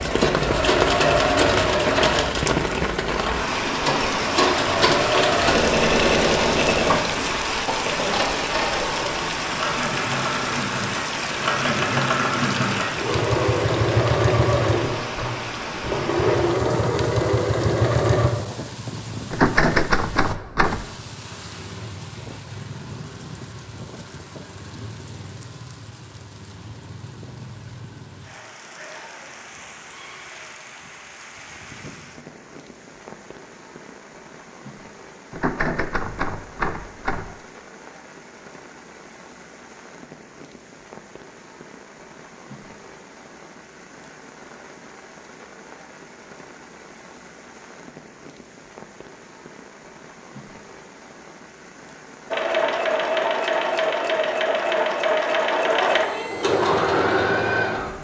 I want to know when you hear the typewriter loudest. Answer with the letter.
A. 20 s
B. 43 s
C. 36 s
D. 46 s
A.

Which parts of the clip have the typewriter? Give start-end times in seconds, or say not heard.
19.3-20.9, 35.3-37.4.